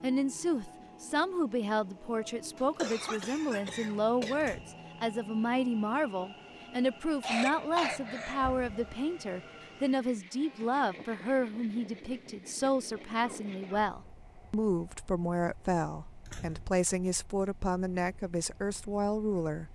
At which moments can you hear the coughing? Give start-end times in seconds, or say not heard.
2.5-4.5, 7.2-8.6, 13.4-13.8.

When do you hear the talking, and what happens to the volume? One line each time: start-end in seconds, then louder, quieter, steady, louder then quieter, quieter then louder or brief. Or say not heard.
0.0-19.7 steady.